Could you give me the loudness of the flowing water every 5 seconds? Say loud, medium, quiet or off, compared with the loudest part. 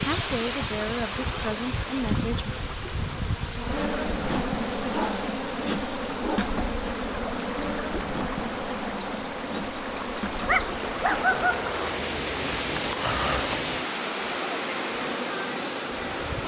medium, medium, loud, loud.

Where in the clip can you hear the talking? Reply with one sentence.
You can hear the talking from 0.0 to 2.5 s.